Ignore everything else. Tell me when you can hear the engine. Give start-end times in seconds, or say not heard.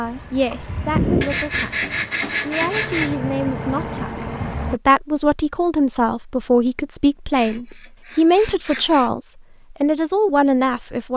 0.0-4.8.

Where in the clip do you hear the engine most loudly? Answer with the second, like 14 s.
1 s.